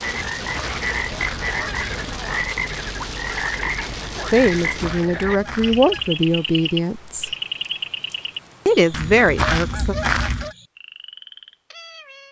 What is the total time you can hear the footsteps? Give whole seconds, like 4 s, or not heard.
not heard.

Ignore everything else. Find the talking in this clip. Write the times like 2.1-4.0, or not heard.
4.3-7.3, 8.7-9.9.